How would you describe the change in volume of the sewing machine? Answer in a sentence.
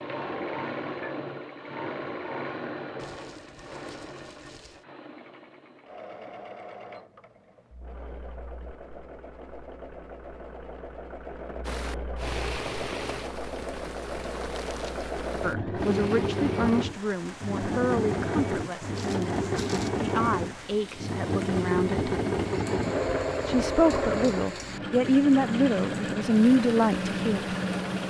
The loudness of the sewing machine goes down, then up.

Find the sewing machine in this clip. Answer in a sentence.
You can hear the sewing machine from 0.0 to 28.0 s.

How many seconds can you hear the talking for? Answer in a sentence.
The talking can be heard for 11 seconds in total.